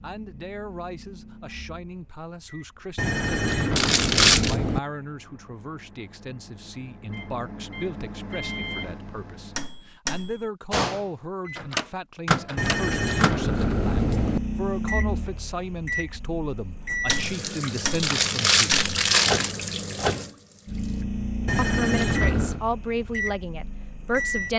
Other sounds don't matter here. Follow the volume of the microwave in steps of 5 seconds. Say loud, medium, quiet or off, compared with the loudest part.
quiet, medium, loud, loud, loud.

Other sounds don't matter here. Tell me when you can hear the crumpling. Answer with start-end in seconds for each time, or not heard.
3.8-4.5, 18.0-19.6.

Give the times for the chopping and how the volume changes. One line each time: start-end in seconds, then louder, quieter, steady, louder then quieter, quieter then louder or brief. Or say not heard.
not heard.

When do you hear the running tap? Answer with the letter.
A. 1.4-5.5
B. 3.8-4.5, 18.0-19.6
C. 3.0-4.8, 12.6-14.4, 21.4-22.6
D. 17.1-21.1
D.